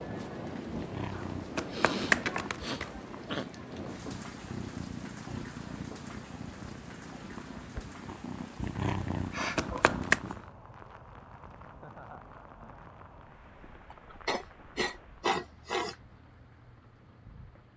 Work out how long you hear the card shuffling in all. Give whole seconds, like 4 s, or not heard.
2 s.